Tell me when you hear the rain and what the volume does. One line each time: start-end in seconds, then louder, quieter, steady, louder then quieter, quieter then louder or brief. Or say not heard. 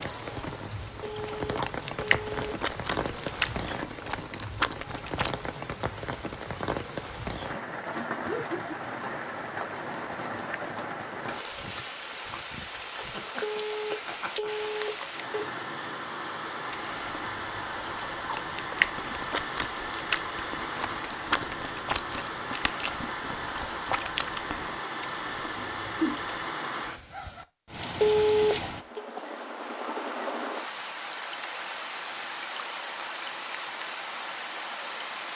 0.0-35.3 steady.